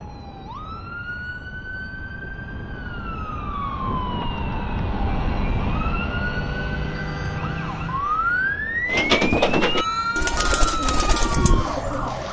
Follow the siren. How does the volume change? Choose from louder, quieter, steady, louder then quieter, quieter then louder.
louder.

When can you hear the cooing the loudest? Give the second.
9 s.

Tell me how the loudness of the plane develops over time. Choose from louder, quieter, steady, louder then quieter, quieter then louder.
louder then quieter.